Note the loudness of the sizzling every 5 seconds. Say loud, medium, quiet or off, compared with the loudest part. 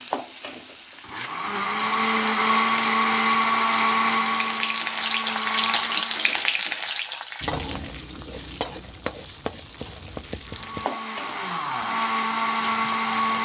medium, loud, medium.